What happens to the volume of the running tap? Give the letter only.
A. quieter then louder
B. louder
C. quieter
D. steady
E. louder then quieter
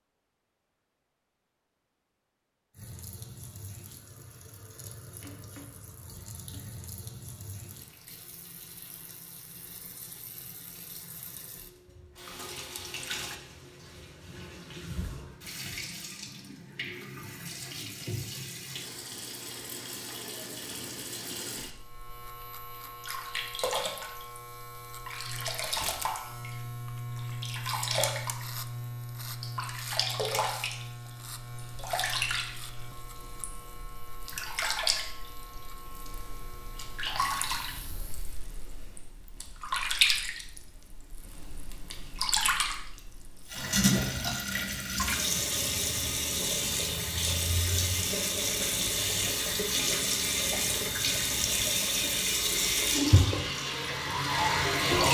B.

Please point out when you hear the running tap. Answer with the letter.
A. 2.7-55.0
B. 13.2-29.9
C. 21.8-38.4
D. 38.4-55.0
A.